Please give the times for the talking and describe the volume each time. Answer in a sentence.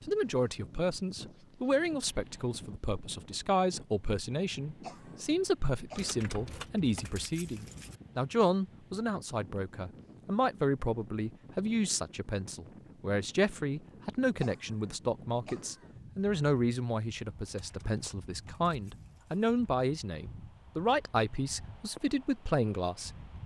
You can hear the talking from 0.1 to 23.4 s, at a steady volume.